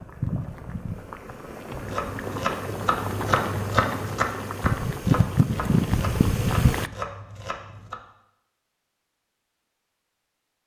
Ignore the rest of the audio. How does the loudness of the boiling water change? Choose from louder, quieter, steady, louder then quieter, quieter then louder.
louder.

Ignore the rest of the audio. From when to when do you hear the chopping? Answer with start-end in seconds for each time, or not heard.
1.8-8.0.